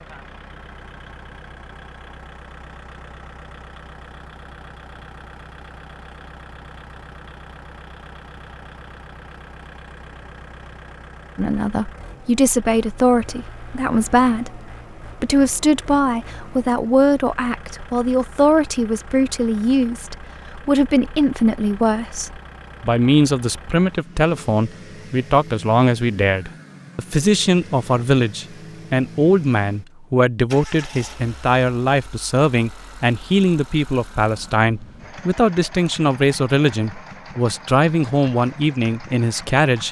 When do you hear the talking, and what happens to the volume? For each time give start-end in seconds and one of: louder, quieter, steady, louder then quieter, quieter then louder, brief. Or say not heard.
11.3-39.8 steady.